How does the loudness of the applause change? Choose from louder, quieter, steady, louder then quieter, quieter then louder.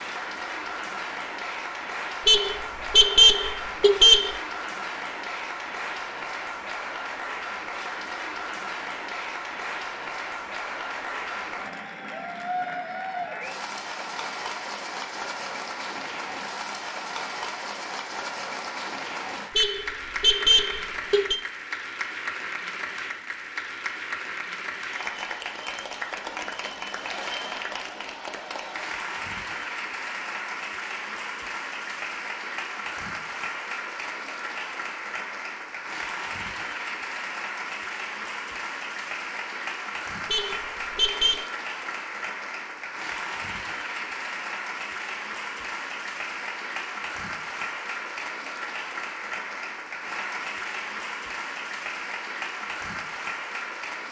steady.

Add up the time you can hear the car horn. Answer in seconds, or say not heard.
5 s.